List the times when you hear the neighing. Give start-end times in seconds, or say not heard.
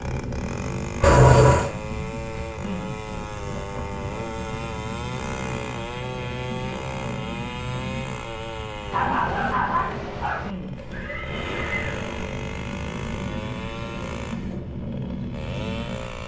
1.0-1.7, 10.8-12.3.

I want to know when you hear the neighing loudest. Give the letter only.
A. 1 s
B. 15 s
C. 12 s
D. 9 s
A.